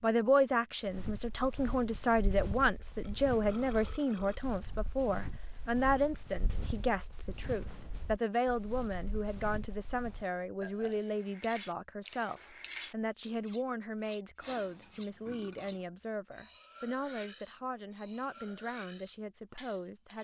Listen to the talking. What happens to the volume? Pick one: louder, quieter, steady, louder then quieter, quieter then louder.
quieter.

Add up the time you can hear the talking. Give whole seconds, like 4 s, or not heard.
20 s.